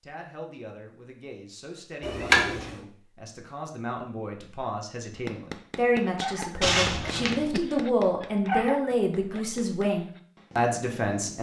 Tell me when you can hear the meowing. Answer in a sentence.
The meowing can be heard from 2.0 to 2.8 s and from 6.6 to 7.5 s.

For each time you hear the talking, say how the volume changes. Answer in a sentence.
The talking can be heard from 0.0 to 11.3 s, getting louder.